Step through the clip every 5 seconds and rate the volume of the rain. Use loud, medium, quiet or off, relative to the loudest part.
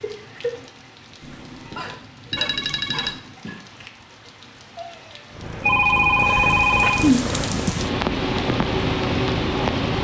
quiet, loud.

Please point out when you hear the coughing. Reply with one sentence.
You can hear the coughing from 1.5 to 3.5 s.